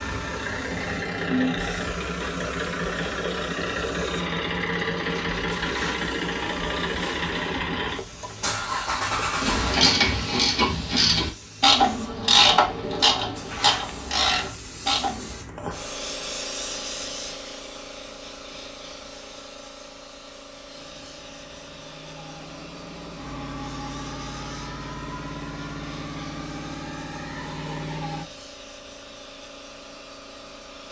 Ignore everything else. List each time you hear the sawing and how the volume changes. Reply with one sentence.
The sawing can't be heard in this clip.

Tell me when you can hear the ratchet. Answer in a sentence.
The ratchet can be heard from 9.4 to 15.3 s.